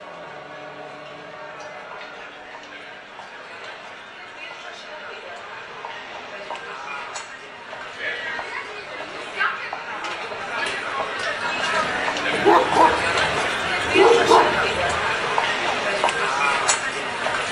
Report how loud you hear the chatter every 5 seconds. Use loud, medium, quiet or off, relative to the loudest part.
quiet, medium, loud, loud.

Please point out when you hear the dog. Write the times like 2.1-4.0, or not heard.
12.3-15.0.